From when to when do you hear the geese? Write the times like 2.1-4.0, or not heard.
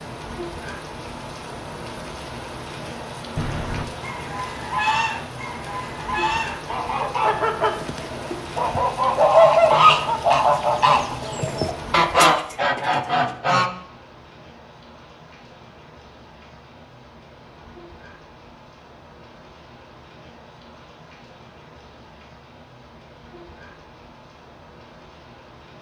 3.4-13.7.